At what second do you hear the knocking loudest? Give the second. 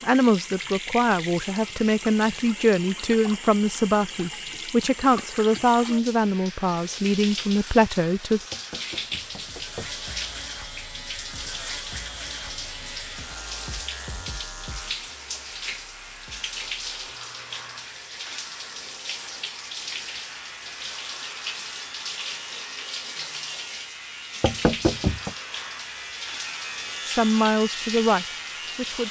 25 s.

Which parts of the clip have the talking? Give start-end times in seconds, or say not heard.
0.0-8.4, 27.1-29.0.